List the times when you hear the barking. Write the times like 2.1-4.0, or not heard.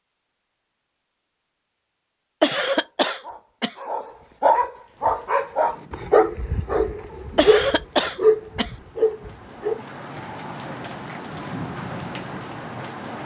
2.6-9.8.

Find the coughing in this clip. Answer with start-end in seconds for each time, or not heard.
2.4-3.8, 7.3-8.7.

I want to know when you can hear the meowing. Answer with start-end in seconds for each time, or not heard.
not heard.